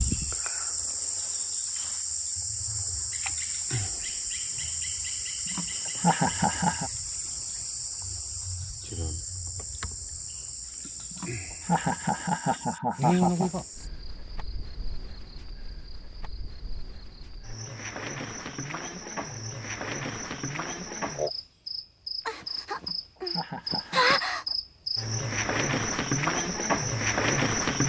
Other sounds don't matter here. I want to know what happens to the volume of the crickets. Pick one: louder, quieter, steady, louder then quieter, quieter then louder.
quieter then louder.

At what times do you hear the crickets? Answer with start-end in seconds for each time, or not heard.
0.0-27.8.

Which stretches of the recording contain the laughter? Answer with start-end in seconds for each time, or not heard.
5.5-6.9, 11.1-13.6, 22.8-24.2.